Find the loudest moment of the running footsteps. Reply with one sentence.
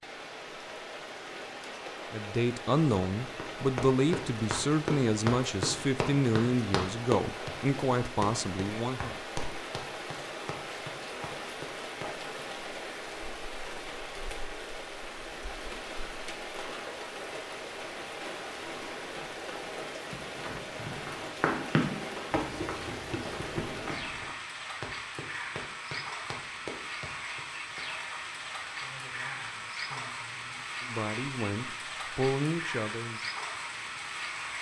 The volume of the running footsteps peaks at 22 seconds.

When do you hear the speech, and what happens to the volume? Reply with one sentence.
The speech can be heard from 2.1 to 9.2 s, at a steady volume; and from 28.7 to 33.2 s, getting louder.